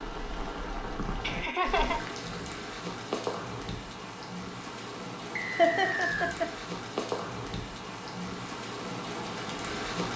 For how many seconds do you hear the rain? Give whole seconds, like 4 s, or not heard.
10 s.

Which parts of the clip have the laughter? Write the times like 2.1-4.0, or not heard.
1.2-2.0, 5.5-6.5.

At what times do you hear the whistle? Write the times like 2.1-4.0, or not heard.
5.3-6.3.